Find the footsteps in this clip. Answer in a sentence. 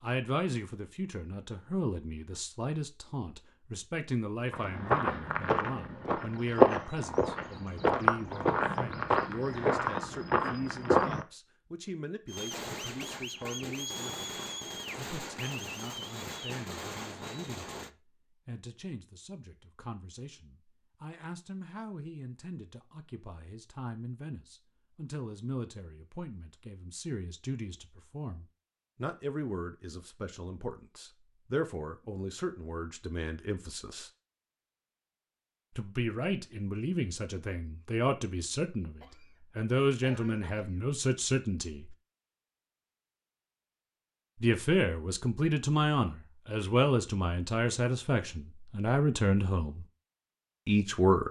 The footsteps can be heard from 4.5 to 11.2 s.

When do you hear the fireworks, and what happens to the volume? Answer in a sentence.
You can hear the fireworks from 12.2 to 17.9 s, at a steady volume.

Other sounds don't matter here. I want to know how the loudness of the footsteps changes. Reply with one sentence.
The loudness of the footsteps goes up, then down.